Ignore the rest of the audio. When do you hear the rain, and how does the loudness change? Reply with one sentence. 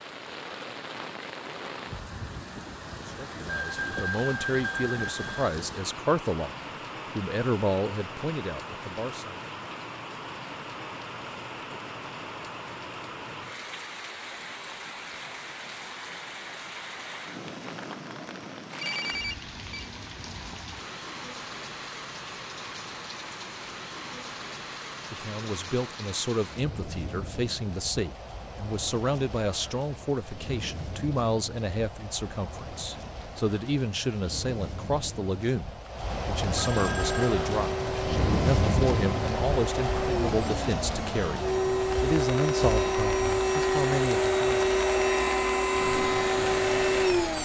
You can hear the rain from 0.0 to 47.3 s, getting louder.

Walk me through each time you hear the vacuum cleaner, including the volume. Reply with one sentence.
The vacuum cleaner can be heard from 37.0 to 47.3 s, getting louder.